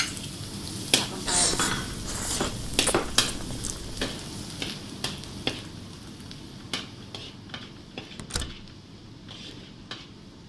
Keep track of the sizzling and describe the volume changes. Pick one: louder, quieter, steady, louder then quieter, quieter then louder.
quieter.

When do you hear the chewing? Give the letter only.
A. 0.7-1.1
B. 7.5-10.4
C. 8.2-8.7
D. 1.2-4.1
D.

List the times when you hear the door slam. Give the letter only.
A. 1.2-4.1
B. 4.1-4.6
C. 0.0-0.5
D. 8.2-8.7
D.